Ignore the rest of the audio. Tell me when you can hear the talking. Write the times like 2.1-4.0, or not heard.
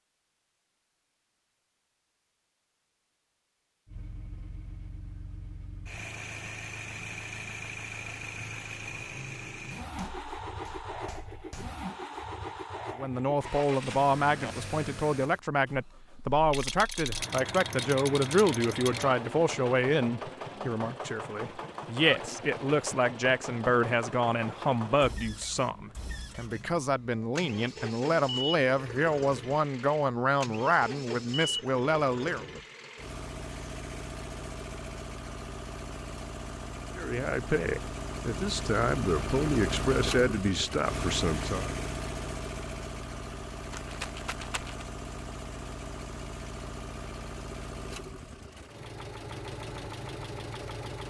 12.9-32.5, 37.0-41.8.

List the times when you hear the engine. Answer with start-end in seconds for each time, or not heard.
3.9-51.0.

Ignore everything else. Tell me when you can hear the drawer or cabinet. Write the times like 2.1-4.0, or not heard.
not heard.